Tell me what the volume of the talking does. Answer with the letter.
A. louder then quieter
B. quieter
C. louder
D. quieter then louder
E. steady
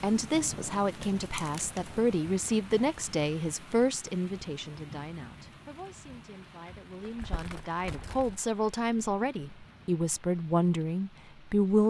D.